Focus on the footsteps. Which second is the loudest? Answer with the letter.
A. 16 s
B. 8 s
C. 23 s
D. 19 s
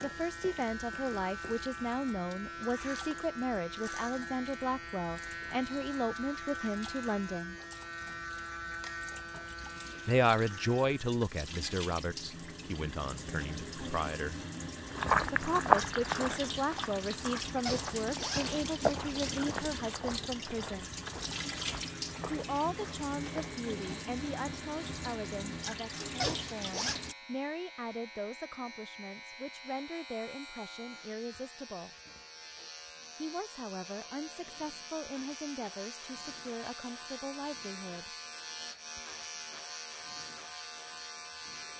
A.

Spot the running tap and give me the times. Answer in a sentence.
You can hear the running tap from 0.0 to 27.1 s.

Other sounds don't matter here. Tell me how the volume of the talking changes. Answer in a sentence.
The loudness of the talking goes down.